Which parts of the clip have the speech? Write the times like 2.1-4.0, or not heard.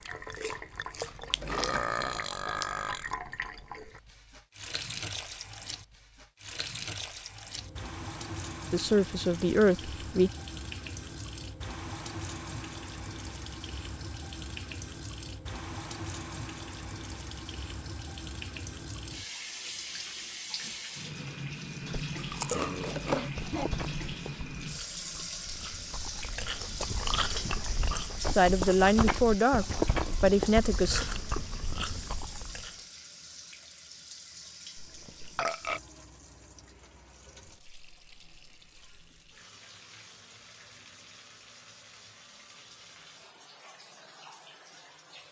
8.7-10.3, 28.4-31.1.